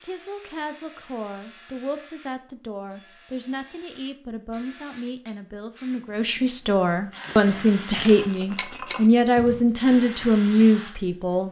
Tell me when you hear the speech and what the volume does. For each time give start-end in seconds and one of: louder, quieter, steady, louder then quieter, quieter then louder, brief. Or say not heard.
0.0-11.4 louder.